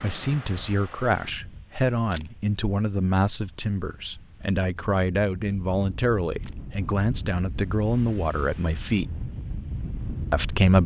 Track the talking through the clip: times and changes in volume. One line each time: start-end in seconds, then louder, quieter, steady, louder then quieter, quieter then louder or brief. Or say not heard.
0.0-9.1 steady
10.3-10.8 brief.